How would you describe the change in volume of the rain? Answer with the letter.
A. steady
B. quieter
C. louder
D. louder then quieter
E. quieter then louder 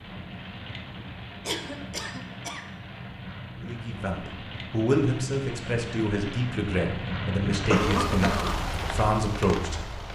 C.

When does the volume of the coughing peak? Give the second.
8 s.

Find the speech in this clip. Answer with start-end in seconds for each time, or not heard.
3.6-9.8.